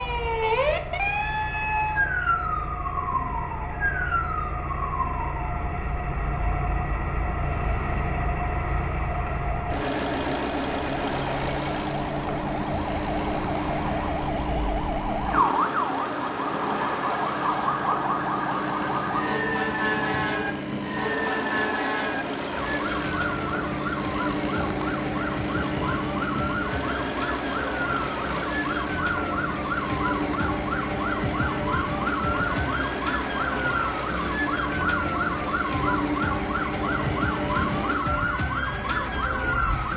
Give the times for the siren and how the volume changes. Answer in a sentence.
You can hear the siren from 0.0 to 39.9 s, at a steady volume.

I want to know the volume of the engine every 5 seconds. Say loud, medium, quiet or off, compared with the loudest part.
medium, loud, loud, loud, loud, loud, loud, loud.